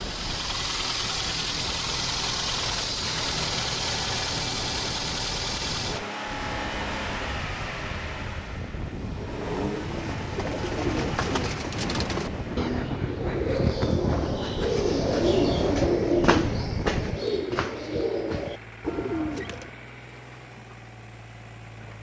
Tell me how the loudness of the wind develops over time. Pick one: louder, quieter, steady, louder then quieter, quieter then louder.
louder.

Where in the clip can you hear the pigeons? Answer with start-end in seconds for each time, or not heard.
9.6-19.7.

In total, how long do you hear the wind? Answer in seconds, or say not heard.
17 s.